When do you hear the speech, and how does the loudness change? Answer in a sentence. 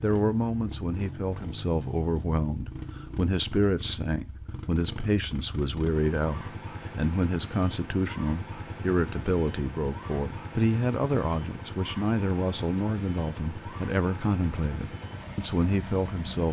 The speech can be heard from 0.0 to 16.4 s, at a steady volume.